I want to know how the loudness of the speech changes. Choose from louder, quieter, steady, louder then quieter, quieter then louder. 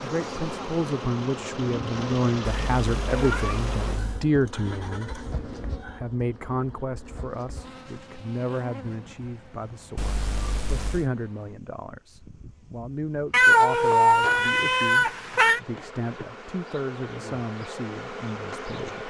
quieter.